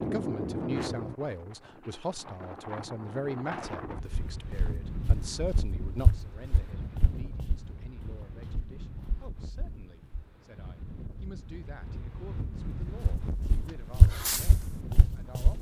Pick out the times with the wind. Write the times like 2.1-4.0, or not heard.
0.0-15.5.